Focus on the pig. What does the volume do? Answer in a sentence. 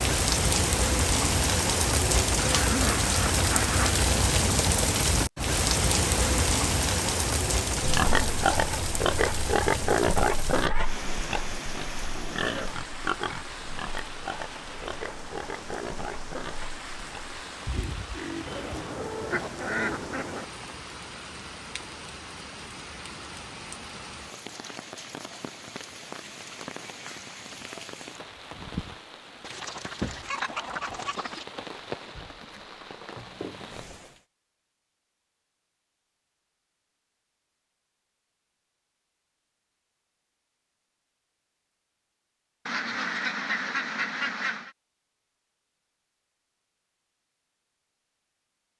The loudness of the pig goes down.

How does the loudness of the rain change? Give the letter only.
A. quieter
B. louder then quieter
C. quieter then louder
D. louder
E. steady
A.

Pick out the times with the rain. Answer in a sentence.
You can hear the rain from 0.0 to 34.2 s.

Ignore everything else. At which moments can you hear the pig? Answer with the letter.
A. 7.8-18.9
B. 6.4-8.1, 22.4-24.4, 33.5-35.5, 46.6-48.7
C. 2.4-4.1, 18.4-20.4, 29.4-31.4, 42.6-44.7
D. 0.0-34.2
A.